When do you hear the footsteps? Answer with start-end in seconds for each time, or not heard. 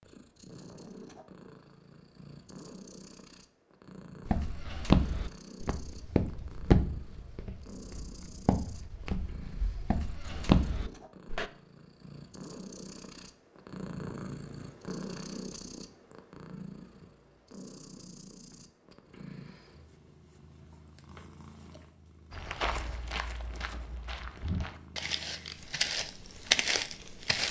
4.2-11.5, 22.3-27.4.